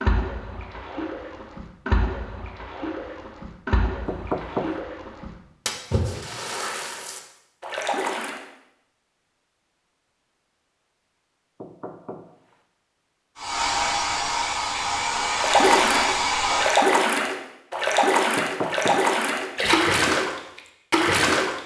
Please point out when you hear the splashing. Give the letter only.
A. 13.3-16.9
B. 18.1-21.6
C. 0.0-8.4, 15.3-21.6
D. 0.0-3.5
C.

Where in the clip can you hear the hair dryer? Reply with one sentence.
The hair dryer can be heard from 13.3 to 16.9 s.